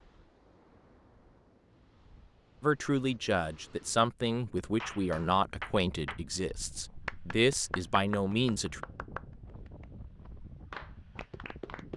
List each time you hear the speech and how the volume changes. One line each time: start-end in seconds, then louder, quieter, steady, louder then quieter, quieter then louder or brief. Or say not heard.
2.6-8.8 quieter then louder.